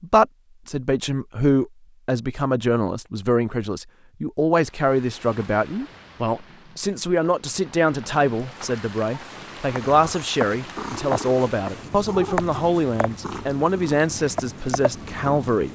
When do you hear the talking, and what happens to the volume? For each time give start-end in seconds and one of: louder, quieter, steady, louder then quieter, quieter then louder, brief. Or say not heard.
0.0-15.7 steady.